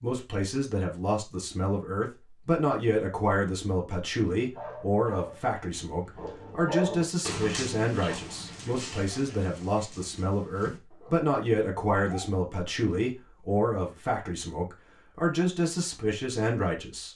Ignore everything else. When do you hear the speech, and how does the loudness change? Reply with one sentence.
The speech can be heard from 0.0 to 17.1 s, at a steady volume.